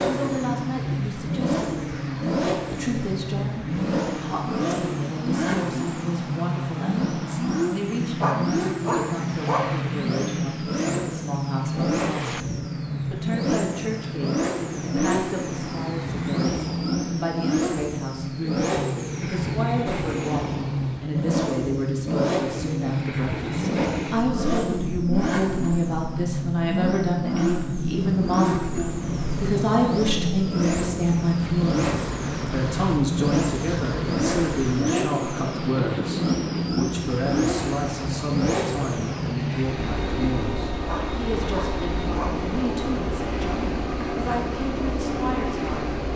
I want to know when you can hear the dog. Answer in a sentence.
The dog can be heard from 8.2 to 9.7 s and from 40.9 to 42.4 s.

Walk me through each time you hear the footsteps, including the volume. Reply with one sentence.
You can't hear the footsteps here.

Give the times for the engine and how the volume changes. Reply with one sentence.
You can hear the engine from 0.0 to 46.1 s, at a steady volume.